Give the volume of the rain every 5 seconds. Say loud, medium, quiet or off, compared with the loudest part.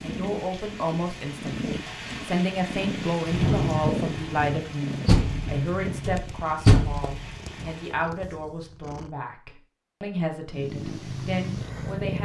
loud, medium, off.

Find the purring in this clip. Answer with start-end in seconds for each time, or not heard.
0.0-9.2, 10.5-12.2.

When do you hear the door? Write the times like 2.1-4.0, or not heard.
5.0-7.7.